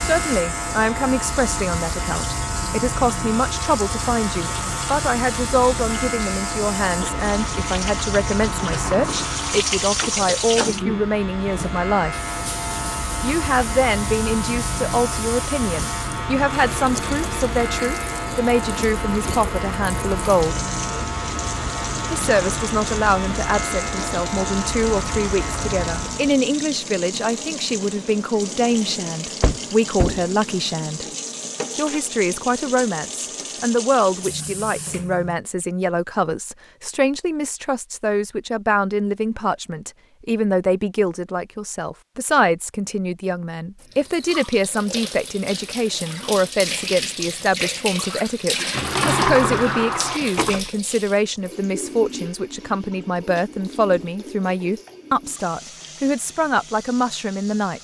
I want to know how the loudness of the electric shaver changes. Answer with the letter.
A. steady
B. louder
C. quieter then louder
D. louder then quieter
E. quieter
A.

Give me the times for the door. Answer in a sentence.
You can hear the door from 8.5 to 10.8 s, from 29.4 to 30.2 s and from 48.7 to 50.7 s.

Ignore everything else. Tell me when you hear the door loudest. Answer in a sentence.
The volume of the door peaks at 49 seconds.